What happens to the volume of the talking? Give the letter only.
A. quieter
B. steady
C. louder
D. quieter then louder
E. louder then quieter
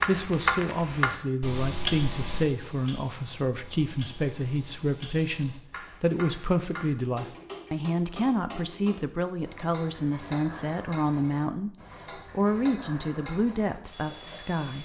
B.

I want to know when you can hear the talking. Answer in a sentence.
The talking can be heard from 0.1 to 14.8 s.